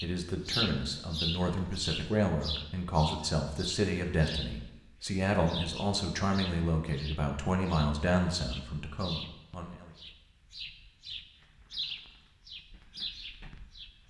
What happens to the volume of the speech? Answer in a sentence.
The volume of the speech stays about the same.